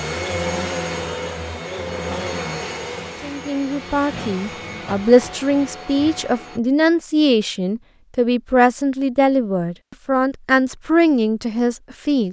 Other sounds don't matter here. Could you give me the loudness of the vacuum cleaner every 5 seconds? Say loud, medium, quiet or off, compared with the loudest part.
loud, medium, off.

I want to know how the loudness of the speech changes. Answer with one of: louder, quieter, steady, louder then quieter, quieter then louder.
steady.